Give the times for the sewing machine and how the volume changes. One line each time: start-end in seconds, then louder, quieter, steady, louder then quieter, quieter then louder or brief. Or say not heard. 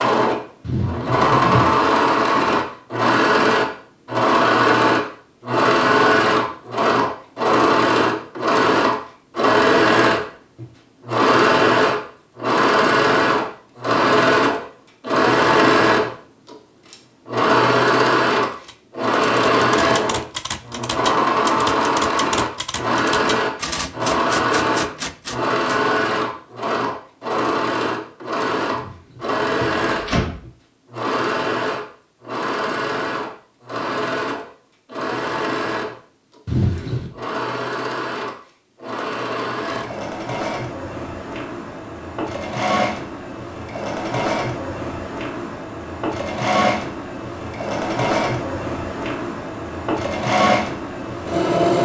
0.0-51.7 quieter.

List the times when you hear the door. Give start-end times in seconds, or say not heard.
0.6-1.6, 28.8-30.4, 36.5-37.1.